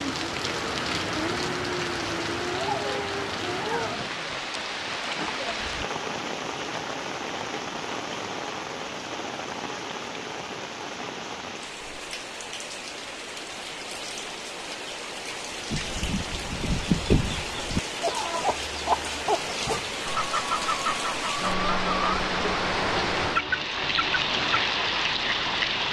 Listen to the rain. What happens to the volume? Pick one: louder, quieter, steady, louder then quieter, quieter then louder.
quieter then louder.